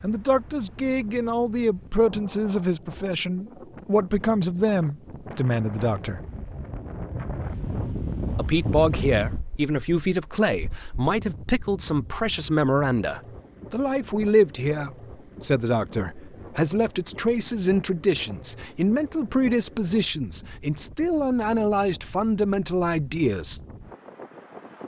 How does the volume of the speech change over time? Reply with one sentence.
The volume of the speech stays about the same.